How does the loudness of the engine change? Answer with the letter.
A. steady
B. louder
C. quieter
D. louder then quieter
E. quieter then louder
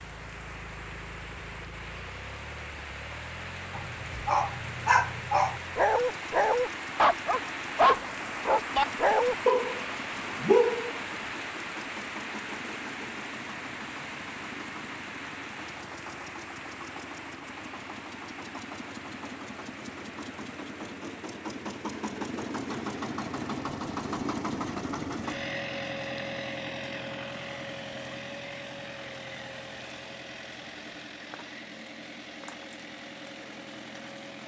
D.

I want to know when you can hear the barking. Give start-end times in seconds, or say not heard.
3.8-11.0.